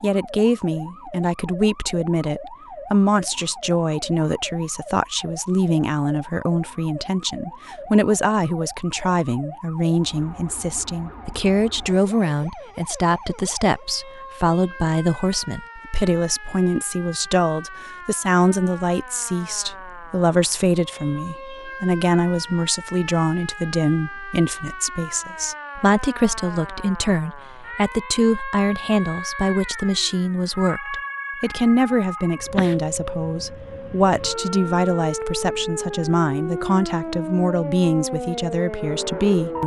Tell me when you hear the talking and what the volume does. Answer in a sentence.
The talking can be heard from 0.0 to 39.6 s, at a steady volume.